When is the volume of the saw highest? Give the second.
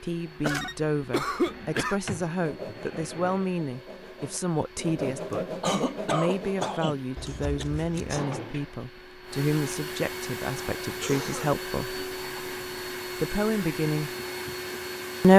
6 s.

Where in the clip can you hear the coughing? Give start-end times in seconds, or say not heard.
0.4-2.0, 5.6-7.7, 10.8-11.6.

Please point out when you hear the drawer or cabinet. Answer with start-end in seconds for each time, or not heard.
1.4-3.5, 8.2-8.8.